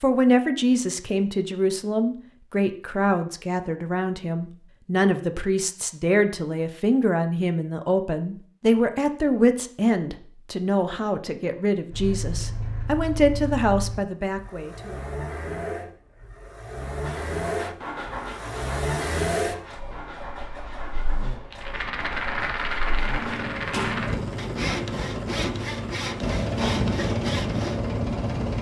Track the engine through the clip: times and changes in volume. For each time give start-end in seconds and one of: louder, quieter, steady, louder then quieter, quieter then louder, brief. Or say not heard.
11.9-28.5 louder.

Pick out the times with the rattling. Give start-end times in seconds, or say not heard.
21.5-24.2.